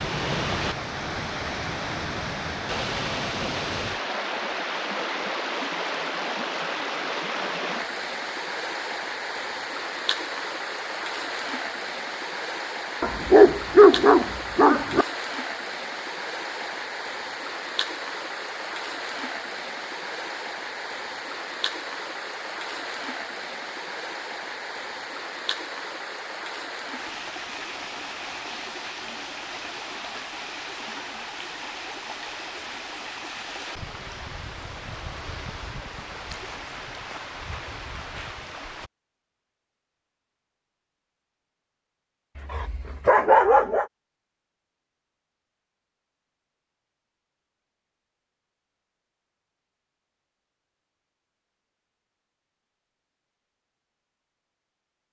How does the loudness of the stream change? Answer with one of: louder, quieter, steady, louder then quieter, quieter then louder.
quieter.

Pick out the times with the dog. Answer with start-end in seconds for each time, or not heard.
13.0-15.1, 42.4-43.9.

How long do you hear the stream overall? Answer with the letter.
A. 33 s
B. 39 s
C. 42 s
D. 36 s
B.